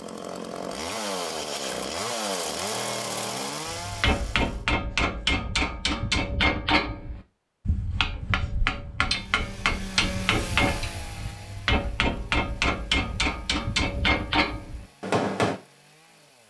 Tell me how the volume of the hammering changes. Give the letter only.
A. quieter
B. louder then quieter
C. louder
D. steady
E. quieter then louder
D.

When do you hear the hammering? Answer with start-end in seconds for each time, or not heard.
3.6-15.6.